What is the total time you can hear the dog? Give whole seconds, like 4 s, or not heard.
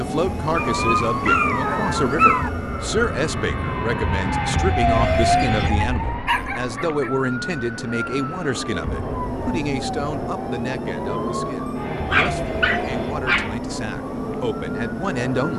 5 s.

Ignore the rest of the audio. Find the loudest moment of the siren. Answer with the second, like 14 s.
5 s.